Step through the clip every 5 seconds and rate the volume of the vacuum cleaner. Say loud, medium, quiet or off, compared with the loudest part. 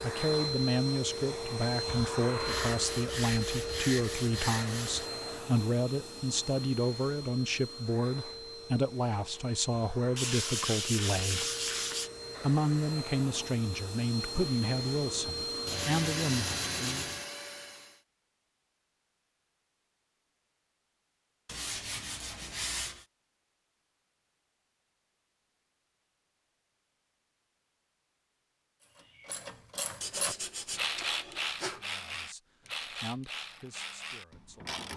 loud, medium, medium, loud, off, off, off.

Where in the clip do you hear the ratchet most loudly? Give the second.
31 s.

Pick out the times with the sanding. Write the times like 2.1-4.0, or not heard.
2.4-5.1, 10.2-12.1, 15.7-17.2, 21.4-23.1, 30.0-31.9.